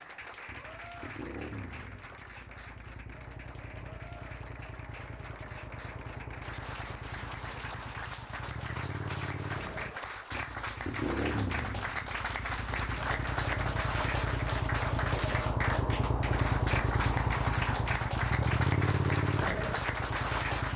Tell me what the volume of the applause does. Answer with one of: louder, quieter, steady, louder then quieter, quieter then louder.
louder.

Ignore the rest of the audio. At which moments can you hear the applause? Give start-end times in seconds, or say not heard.
0.0-20.7.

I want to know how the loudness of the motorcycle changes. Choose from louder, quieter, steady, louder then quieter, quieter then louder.
louder.